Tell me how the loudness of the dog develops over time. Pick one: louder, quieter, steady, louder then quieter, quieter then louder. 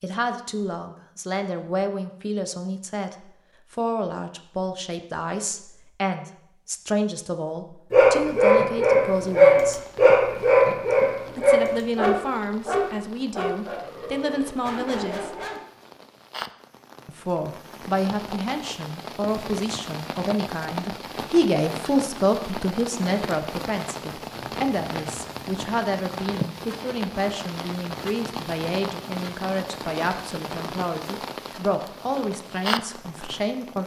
quieter.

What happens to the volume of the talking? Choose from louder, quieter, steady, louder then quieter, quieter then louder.
steady.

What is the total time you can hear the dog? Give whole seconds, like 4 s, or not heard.
8 s.